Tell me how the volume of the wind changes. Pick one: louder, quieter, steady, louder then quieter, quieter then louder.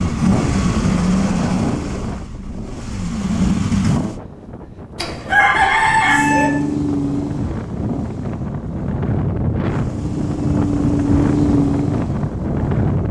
quieter then louder.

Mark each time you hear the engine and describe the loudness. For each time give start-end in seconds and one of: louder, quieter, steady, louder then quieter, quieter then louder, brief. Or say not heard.
0.0-4.2 quieter then louder
6.0-13.0 quieter then louder.